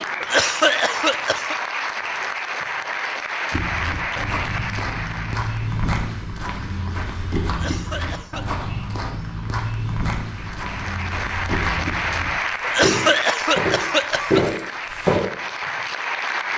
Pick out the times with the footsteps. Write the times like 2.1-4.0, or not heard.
3.5-15.2.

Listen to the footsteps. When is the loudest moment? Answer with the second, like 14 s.
14 s.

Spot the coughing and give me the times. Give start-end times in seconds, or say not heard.
0.2-1.6, 7.5-8.4, 12.6-14.4.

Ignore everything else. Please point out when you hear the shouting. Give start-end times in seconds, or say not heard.
not heard.